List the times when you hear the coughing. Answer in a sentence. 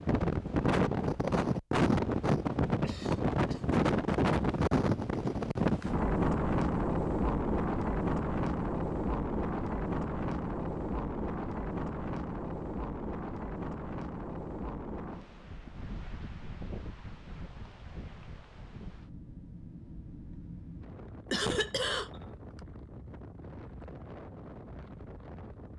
The coughing can be heard from 2.8 to 3.6 s and from 21.3 to 22.2 s.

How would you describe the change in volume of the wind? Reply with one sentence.
The loudness of the wind goes down.